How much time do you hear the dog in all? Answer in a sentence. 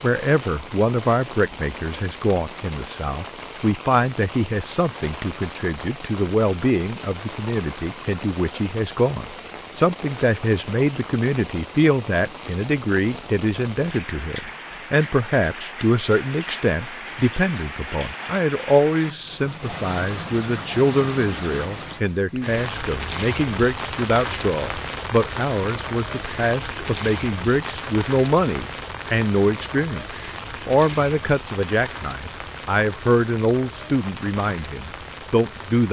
The dog can't be heard in this clip.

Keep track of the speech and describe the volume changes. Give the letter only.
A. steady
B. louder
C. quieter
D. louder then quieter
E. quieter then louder
A.